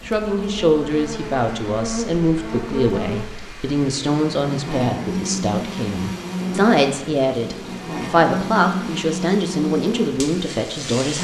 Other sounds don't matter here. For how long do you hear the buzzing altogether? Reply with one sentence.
You can hear the buzzing for 11 seconds altogether.